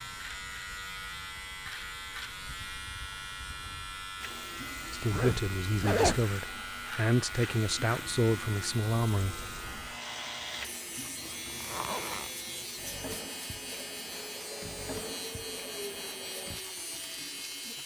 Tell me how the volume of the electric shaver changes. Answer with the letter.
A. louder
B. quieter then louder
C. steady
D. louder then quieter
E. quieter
C.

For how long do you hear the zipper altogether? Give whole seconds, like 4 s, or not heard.
2 s.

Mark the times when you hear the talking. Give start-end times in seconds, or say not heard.
4.9-9.5.